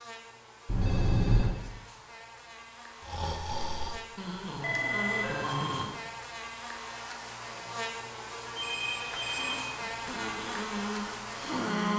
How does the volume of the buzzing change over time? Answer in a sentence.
The volume of the buzzing goes up.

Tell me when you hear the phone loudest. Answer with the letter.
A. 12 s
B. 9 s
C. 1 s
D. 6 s
C.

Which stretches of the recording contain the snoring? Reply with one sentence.
The snoring can be heard from 3.0 to 6.0 s and from 9.2 to 11.9 s.